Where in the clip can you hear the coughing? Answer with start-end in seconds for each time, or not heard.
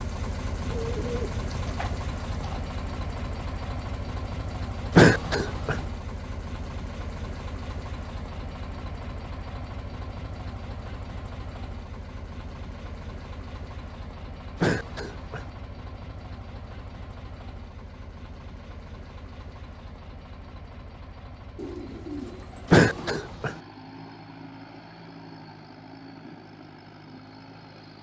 4.9-5.8, 14.6-15.4, 22.6-23.6.